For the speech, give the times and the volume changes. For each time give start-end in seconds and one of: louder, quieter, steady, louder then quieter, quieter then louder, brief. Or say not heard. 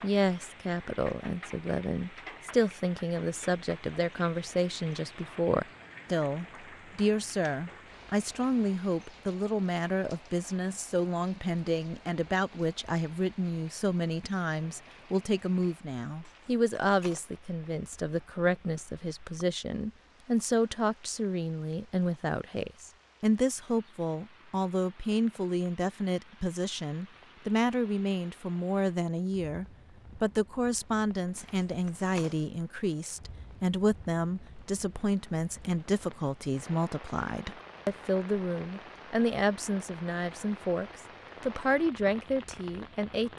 0.0-43.3 steady.